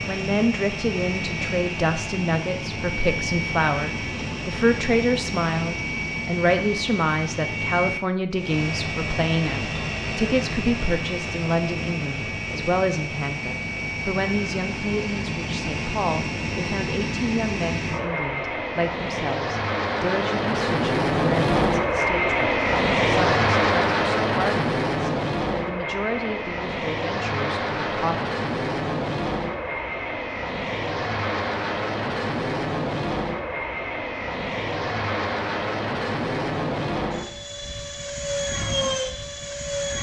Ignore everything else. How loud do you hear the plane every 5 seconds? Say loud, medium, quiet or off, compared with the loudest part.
medium, medium, medium, medium, loud, medium, medium, medium.